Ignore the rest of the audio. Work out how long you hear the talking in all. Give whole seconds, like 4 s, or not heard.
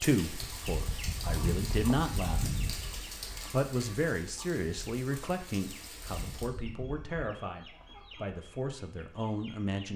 9 s.